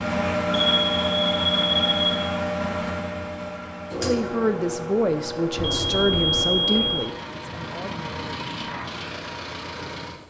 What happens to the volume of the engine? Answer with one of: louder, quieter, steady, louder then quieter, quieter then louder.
quieter.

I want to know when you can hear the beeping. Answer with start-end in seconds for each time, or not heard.
0.5-2.1, 5.5-7.1.